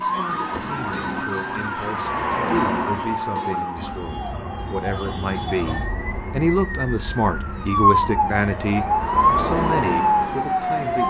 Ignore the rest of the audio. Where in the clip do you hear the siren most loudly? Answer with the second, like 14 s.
10 s.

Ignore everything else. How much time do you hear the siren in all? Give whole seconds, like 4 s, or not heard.
11 s.